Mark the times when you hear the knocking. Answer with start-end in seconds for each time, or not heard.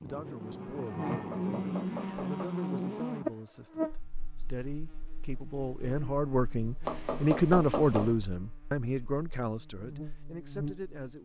1.1-2.5, 6.8-8.2.